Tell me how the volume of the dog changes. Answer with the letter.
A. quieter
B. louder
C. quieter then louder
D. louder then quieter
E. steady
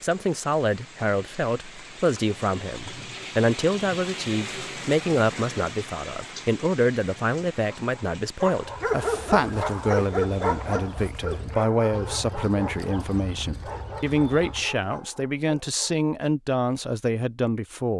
A.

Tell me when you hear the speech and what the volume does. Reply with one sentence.
The speech can be heard from 0.0 to 17.9 s, at a steady volume.